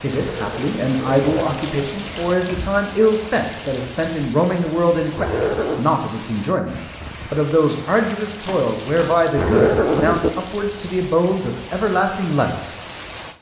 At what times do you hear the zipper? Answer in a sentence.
You can hear the zipper from 0.1 to 1.9 s, from 5.2 to 5.8 s and from 9.3 to 10.3 s.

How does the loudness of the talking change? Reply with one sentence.
The volume of the talking stays about the same.